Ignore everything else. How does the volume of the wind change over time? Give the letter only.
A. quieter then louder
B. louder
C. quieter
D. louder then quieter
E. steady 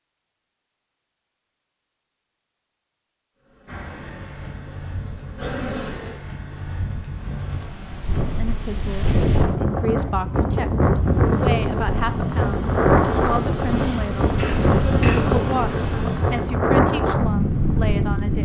B.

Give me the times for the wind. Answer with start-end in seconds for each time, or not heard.
3.6-18.4.